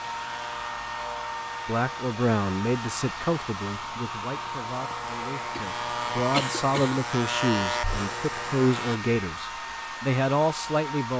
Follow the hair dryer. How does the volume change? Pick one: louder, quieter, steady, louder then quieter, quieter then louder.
steady.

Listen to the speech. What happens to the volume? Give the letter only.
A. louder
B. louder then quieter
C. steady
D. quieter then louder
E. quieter
D.